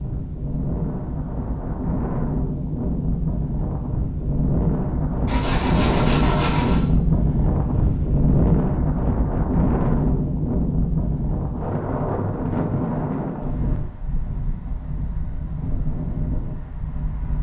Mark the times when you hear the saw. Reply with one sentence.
The saw can be heard from 5.2 to 6.8 s.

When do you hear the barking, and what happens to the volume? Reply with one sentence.
The barking can't be heard in this clip.